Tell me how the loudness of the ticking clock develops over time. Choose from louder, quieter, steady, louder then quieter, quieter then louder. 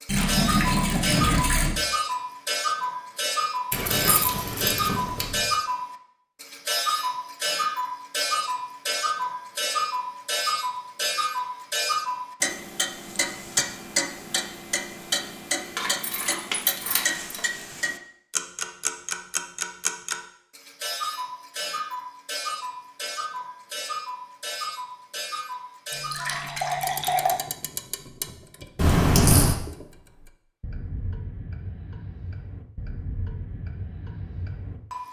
quieter.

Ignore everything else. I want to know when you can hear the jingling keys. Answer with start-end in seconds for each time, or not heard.
3.7-5.5, 15.8-17.4, 28.8-29.6.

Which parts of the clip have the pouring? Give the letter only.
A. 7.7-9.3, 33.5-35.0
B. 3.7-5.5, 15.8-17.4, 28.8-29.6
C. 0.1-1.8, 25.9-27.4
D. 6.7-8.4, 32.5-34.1
C.